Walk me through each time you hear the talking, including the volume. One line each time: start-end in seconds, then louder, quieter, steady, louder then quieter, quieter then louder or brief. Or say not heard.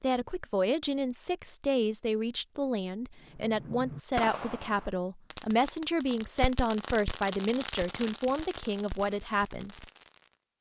0.0-9.8 steady.